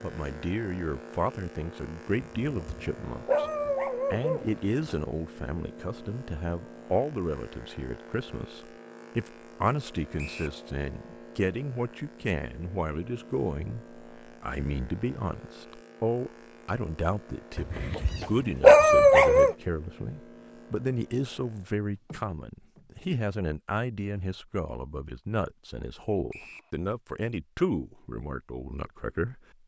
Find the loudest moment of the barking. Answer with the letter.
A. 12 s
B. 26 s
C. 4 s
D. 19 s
D.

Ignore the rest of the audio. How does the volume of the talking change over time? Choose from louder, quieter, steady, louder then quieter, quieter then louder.
steady.